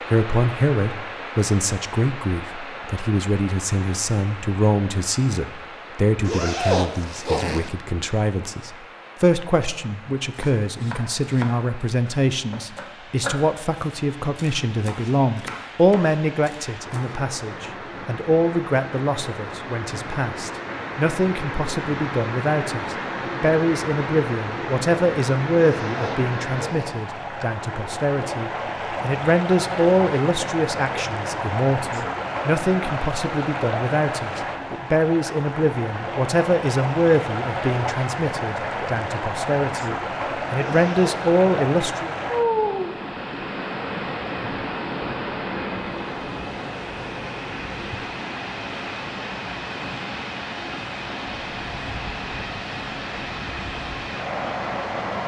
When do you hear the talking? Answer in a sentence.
The talking can be heard from 0.1 to 42.1 s.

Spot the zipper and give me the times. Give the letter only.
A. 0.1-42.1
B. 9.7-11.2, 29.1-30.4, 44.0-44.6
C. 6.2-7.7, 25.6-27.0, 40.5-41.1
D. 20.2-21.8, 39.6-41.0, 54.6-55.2
C.